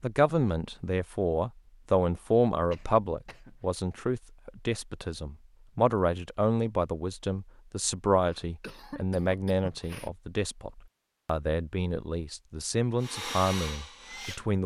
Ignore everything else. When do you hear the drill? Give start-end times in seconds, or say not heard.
13.0-14.4.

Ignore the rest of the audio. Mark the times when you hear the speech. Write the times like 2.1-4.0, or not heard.
0.0-14.6.